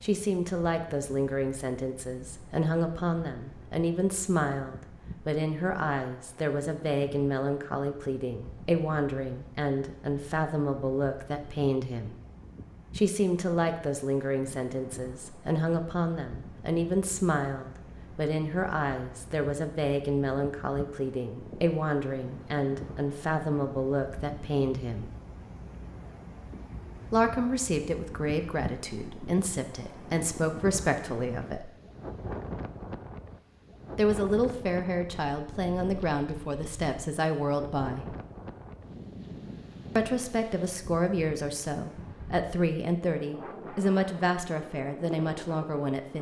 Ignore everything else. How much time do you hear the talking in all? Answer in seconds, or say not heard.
39 s.